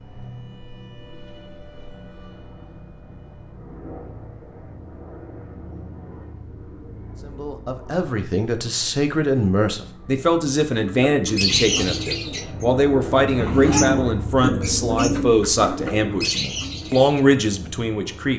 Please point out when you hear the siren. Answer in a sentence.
The siren can be heard from 0.0 to 3.5 s.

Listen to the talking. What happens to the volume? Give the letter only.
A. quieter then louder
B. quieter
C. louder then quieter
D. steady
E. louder
D.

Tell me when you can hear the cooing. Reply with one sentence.
The cooing can be heard from 10.7 to 17.2 s.